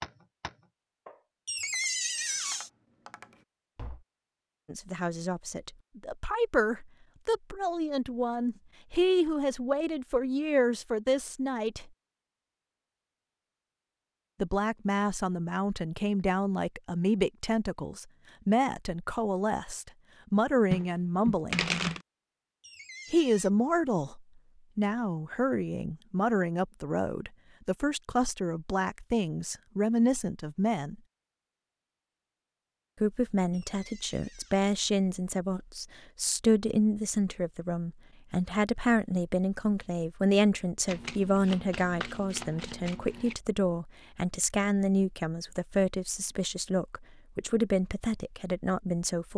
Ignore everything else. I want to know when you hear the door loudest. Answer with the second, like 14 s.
2 s.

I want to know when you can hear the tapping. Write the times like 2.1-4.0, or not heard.
0.0-4.0.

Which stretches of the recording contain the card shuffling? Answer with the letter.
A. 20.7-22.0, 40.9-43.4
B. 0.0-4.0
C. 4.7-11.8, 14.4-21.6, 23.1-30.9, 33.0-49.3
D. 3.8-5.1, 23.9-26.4
A.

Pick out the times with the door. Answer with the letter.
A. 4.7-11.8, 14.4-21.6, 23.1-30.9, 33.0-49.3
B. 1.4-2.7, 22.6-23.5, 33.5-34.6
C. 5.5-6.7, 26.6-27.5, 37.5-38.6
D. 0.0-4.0
B.